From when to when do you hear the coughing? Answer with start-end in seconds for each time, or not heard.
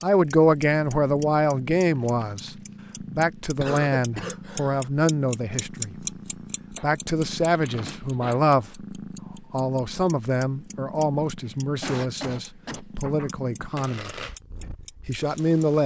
3.5-5.0, 11.4-12.8.